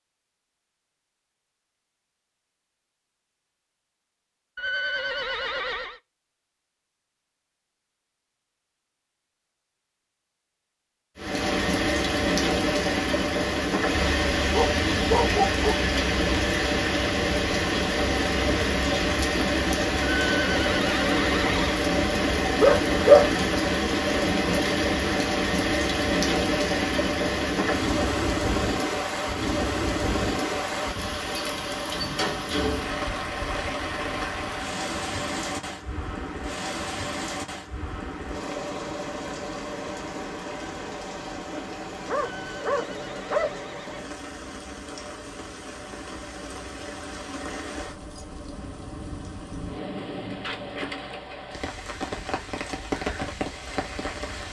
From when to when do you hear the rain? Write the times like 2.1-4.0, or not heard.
11.2-54.4.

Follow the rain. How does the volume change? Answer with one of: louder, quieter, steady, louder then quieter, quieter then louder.
quieter.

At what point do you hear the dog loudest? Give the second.
23 s.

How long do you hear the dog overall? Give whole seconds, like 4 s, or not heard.
4 s.